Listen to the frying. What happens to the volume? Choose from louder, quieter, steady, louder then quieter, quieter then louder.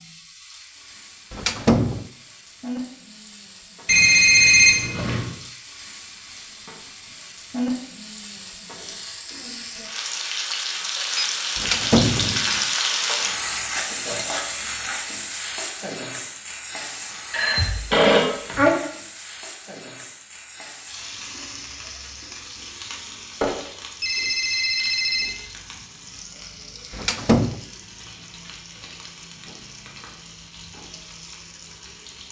louder then quieter.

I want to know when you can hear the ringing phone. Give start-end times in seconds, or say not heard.
3.9-5.3, 17.3-18.7, 23.4-25.4.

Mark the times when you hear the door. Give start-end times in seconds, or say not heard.
1.3-2.0, 11.6-12.6, 26.9-27.6.